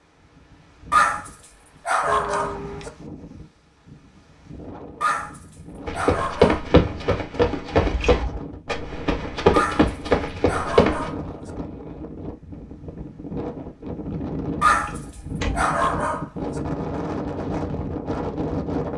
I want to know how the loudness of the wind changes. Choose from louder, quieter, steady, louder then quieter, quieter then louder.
louder.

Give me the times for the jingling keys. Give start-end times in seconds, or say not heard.
2.0-2.9, 7.8-8.4, 14.7-15.7.